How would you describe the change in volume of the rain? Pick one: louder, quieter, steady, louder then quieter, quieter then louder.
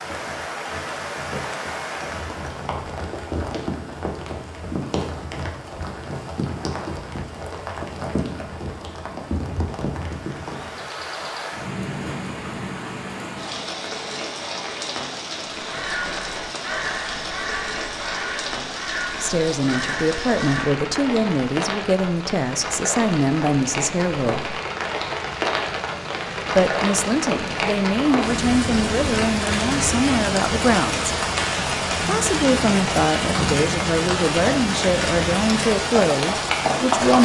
louder.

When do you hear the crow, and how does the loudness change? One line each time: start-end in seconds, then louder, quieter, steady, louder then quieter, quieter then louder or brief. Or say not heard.
15.7-20.9 steady.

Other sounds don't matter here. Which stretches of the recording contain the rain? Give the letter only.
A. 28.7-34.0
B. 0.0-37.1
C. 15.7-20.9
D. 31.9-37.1
B.